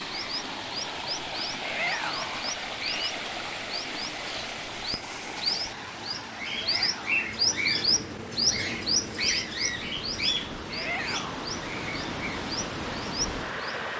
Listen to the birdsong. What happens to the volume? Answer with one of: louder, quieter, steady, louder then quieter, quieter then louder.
louder then quieter.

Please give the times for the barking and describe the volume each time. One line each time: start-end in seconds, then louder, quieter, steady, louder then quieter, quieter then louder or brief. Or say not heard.
not heard.